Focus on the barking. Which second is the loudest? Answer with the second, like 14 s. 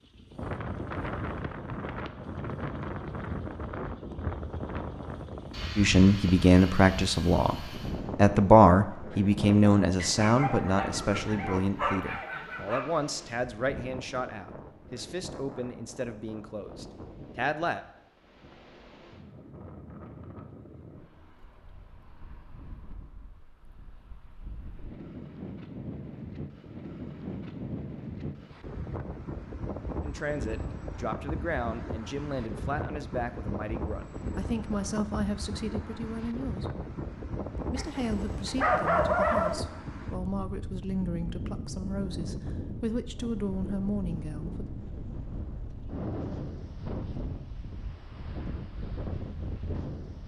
39 s.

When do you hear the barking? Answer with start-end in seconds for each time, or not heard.
9.9-12.8, 37.8-39.6.